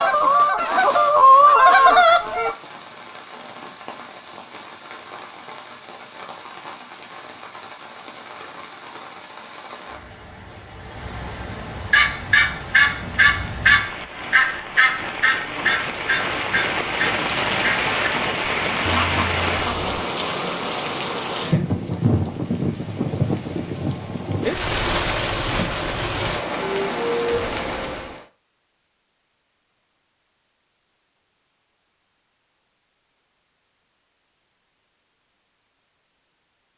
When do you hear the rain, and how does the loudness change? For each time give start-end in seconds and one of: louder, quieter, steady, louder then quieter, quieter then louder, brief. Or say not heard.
0.0-28.2 louder.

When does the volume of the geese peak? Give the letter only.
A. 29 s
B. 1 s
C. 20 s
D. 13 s
B.